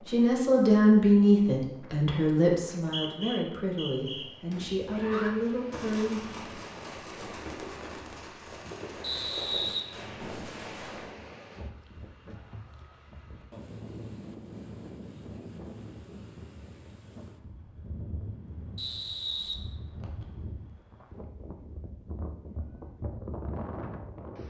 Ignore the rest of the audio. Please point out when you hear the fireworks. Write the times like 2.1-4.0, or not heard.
4.5-11.3.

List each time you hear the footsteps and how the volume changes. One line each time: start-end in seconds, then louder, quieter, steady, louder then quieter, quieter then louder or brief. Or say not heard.
not heard.